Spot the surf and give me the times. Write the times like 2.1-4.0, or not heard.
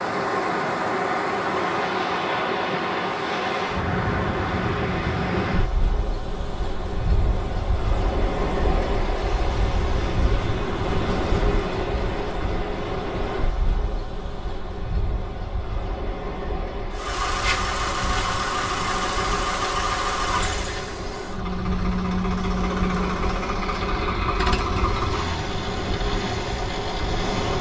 0.0-27.5.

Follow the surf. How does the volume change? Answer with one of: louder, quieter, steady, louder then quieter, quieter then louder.
quieter.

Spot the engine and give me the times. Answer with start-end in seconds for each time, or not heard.
16.9-27.5.